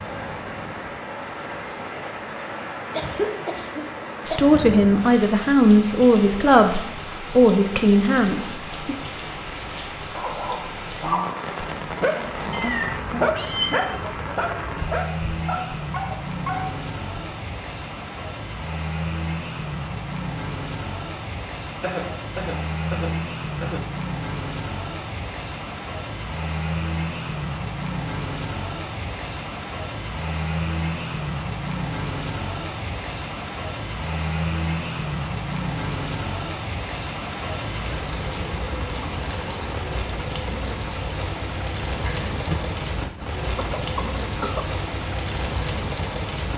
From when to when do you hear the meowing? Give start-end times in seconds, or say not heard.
12.5-13.8, 42.0-42.8.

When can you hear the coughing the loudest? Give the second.
3 s.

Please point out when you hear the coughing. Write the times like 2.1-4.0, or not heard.
2.9-4.5, 21.8-23.8, 43.5-44.7.